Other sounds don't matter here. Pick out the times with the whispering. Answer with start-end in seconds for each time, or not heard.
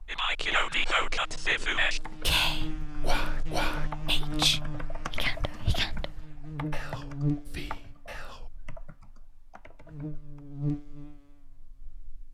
0.1-8.5.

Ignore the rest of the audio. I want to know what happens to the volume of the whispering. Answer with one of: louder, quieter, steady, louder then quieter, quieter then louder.
quieter.